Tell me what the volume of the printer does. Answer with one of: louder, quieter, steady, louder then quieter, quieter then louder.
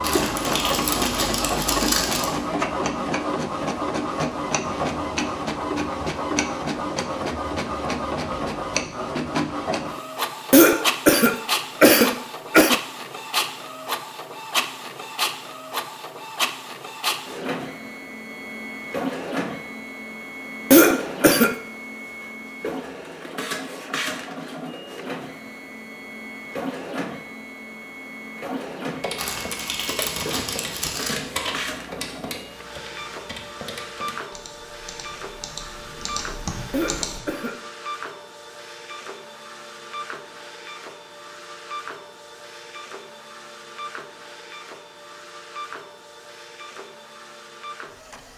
quieter.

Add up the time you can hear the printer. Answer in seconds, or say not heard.
48 s.